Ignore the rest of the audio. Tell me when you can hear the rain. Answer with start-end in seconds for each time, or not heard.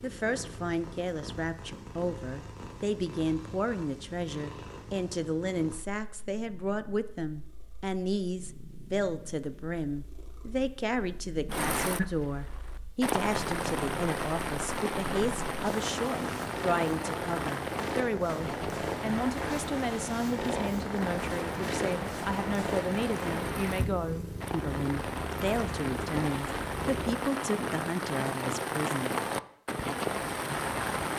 11.4-31.1.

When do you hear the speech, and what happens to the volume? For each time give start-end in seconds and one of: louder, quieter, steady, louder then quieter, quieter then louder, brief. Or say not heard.
0.0-29.1 steady.